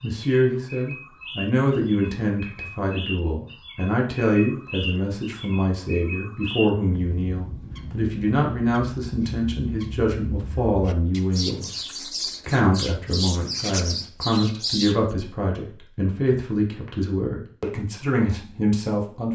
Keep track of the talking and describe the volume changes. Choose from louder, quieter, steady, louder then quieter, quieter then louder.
steady.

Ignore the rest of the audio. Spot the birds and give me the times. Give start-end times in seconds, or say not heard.
0.0-15.0.